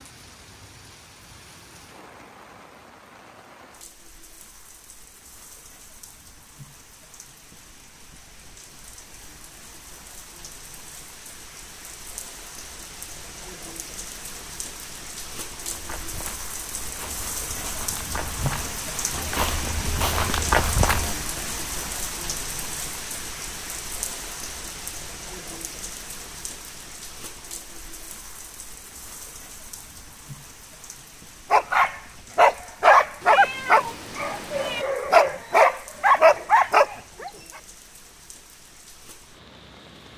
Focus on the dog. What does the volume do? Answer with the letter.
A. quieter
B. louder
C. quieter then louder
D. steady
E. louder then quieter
C.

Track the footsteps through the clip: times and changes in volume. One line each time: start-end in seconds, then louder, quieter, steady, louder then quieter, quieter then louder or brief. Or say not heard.
15.7-21.4 louder.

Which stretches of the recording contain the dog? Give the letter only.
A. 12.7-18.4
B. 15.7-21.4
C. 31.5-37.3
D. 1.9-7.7
C.